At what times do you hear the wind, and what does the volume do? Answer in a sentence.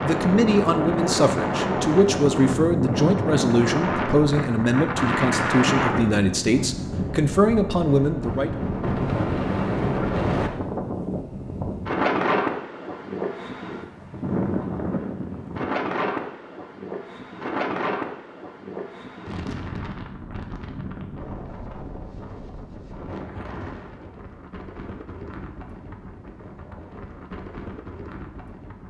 You can hear the wind from 0.0 to 28.8 s, getting quieter.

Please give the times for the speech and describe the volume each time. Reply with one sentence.
The speech can be heard from 0.0 to 8.5 s, at a steady volume.